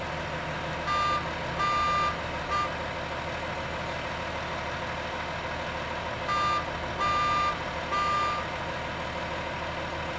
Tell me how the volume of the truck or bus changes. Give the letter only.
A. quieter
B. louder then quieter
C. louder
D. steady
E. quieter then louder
D.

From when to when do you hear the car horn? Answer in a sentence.
The car horn can be heard from 0.8 to 2.7 s and from 6.2 to 8.4 s.